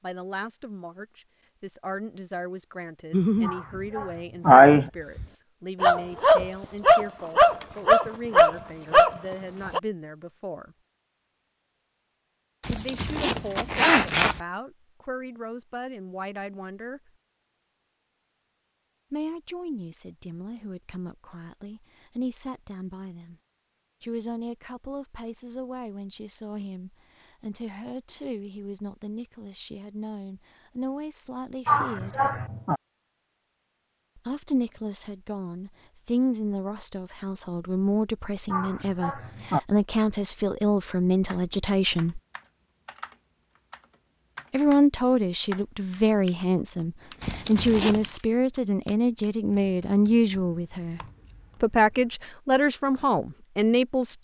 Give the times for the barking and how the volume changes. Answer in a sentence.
You can hear the barking from 3.1 to 9.8 s, getting louder.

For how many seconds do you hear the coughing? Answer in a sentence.
The coughing can be heard for 4 seconds in total.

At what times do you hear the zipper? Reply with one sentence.
You can hear the zipper from 12.6 to 14.4 s and from 47.2 to 48.1 s.